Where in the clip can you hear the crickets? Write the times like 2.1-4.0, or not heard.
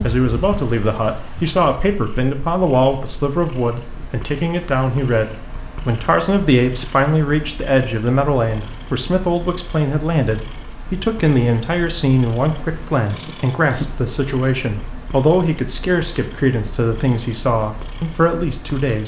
0.0-10.8.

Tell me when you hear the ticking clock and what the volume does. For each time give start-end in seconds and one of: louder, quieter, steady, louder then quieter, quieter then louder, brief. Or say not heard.
not heard.